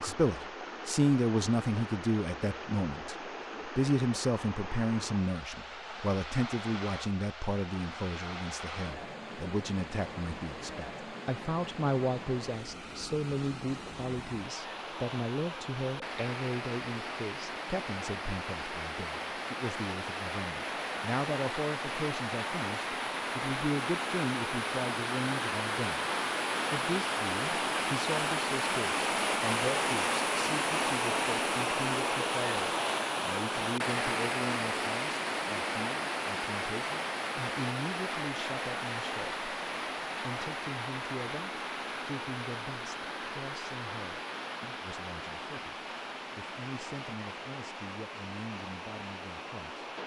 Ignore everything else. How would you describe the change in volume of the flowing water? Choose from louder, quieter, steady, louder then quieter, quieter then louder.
louder then quieter.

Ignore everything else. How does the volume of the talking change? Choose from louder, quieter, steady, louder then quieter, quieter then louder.
quieter.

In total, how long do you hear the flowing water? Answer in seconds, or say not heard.
50 s.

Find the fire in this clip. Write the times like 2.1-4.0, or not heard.
not heard.